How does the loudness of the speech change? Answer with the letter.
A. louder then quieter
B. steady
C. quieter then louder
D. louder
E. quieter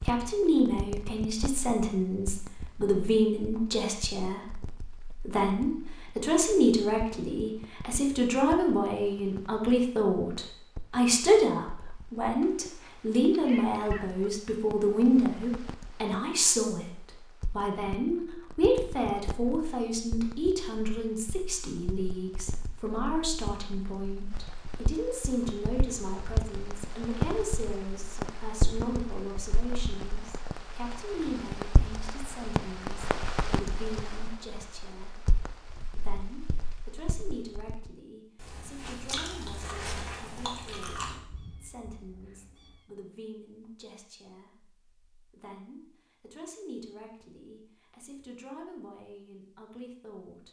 E.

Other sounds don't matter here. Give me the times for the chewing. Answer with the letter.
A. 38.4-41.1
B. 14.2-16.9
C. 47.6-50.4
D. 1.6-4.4
A.